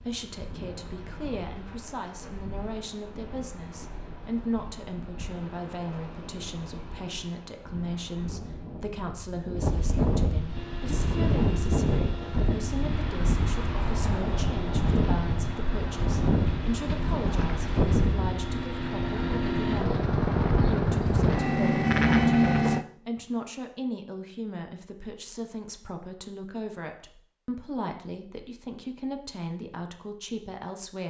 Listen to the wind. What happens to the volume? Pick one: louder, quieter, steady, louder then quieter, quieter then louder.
louder.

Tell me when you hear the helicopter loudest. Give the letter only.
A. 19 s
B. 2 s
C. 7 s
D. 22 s
D.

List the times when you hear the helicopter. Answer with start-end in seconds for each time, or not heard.
10.5-22.9.